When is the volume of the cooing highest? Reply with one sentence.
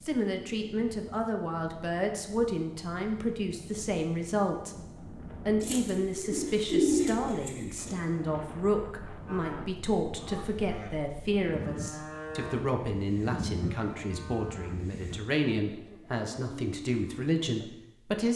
The volume of the cooing peaks at 7 seconds.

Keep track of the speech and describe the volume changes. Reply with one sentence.
The volume of the speech stays about the same.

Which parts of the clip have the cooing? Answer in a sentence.
The cooing can be heard from 5.6 to 8.0 s.